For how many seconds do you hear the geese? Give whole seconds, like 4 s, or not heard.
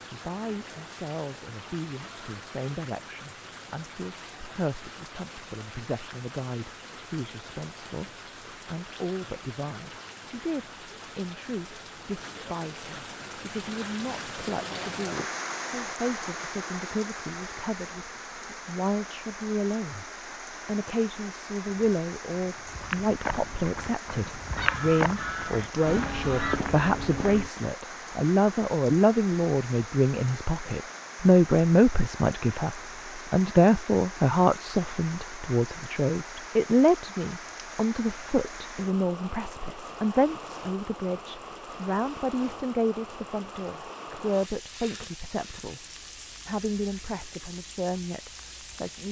2 s.